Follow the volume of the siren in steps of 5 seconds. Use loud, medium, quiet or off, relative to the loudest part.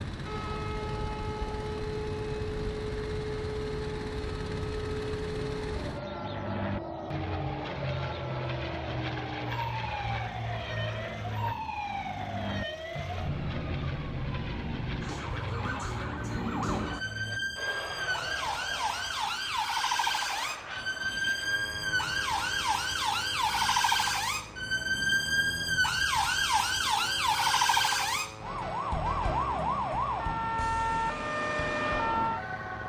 medium, medium, medium, medium, loud, loud, loud.